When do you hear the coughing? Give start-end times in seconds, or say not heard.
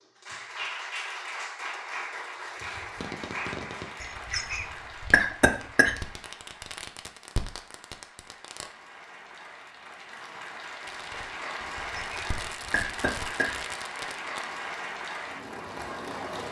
4.0-6.0, 11.8-13.6.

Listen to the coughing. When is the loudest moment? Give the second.
5 s.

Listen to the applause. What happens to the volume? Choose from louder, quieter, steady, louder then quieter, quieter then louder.
quieter then louder.